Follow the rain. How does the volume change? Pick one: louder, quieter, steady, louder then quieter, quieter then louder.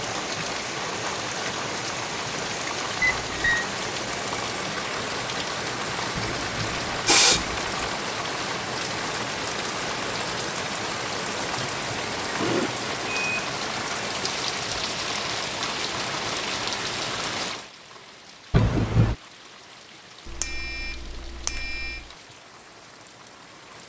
quieter.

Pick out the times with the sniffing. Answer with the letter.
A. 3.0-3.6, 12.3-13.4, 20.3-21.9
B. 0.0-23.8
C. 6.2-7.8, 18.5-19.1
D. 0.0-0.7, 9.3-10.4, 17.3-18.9
C.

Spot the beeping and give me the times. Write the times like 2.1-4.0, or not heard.
3.0-3.6, 12.3-13.4, 20.3-21.9.